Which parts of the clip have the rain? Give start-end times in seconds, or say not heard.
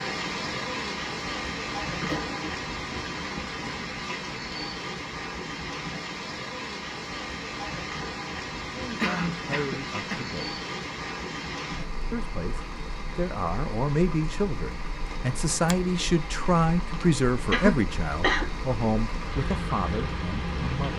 0.0-20.9.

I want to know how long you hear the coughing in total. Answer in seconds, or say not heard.
3 s.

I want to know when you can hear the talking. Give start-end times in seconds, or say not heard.
8.8-10.6, 12.1-20.9.